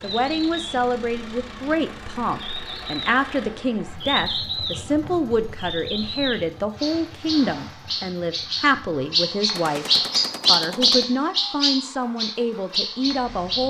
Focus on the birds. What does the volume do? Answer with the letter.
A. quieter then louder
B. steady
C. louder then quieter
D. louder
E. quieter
D.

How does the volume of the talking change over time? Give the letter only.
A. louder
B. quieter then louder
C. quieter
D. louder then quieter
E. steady
E.